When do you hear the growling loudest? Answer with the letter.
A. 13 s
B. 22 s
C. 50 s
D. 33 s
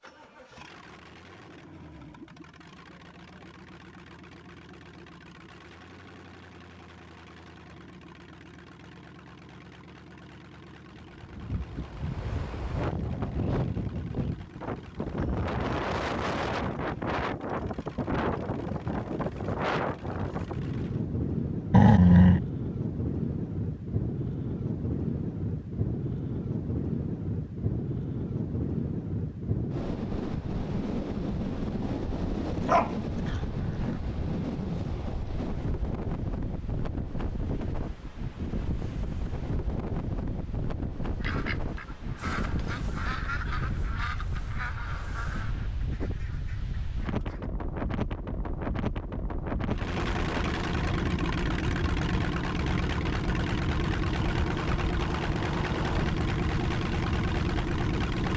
B.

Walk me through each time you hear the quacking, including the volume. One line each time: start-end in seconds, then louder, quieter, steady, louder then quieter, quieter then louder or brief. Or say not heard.
41.2-47.5 quieter.